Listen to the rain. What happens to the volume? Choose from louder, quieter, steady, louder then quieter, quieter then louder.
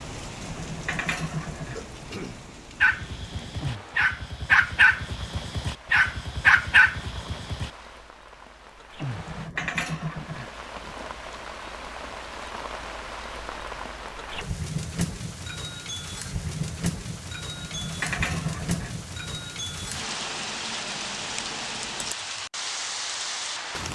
louder.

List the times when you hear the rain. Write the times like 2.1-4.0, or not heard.
0.0-23.9.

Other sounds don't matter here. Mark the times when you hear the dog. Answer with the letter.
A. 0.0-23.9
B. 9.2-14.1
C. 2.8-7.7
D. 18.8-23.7
C.